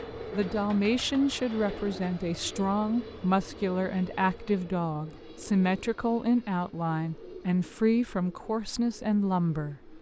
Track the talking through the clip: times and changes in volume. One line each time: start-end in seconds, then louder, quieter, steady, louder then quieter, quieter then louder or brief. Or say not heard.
0.1-9.9 steady.